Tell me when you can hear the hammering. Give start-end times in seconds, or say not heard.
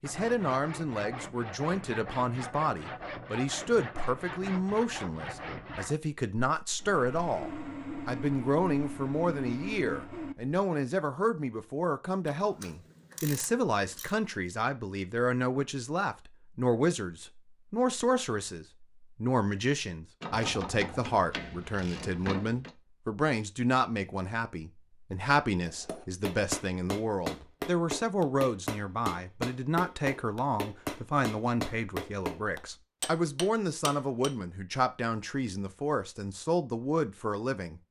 25.6-34.4.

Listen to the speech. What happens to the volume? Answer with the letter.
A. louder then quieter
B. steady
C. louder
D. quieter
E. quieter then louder
B.